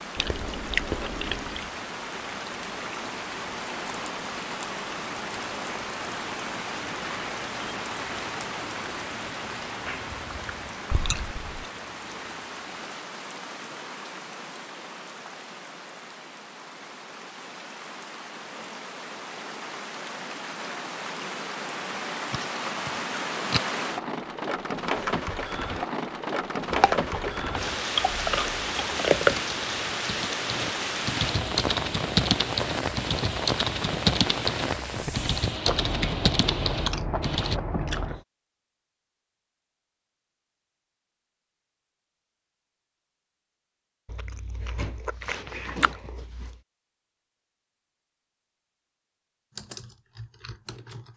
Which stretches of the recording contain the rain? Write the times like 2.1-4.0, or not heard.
0.0-35.6.